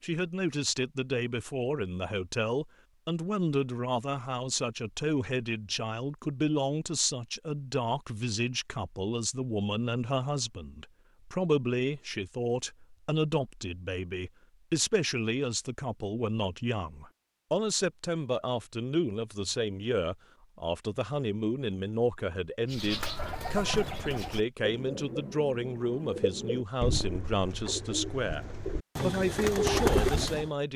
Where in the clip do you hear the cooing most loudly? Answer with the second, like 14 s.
30 s.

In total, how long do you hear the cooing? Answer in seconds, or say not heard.
8 s.